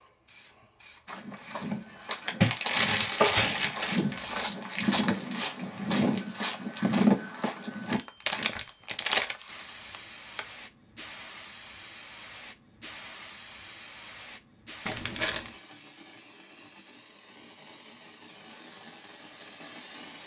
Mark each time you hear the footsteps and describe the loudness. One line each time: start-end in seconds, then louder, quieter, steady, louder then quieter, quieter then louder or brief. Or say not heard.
1.1-8.5 louder.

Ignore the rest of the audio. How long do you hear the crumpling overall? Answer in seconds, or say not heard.
5 s.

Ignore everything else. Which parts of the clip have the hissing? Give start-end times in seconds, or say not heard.
0.0-4.5, 9.4-20.2.